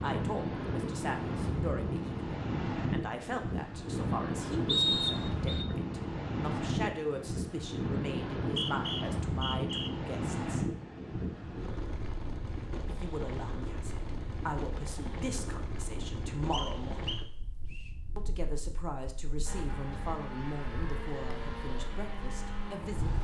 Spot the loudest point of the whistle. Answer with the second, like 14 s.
5 s.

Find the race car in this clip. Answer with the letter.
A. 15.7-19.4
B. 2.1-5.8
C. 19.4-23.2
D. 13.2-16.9
C.